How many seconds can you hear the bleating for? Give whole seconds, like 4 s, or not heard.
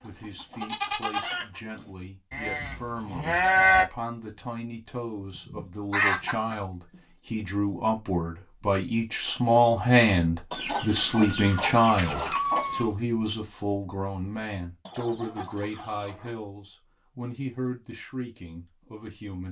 4 s.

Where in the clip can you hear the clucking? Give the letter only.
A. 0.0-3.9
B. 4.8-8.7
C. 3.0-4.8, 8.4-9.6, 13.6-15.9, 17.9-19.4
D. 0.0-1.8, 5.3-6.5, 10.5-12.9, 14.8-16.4
D.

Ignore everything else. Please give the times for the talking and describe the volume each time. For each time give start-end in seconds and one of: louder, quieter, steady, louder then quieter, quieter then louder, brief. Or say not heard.
0.0-19.4 louder then quieter.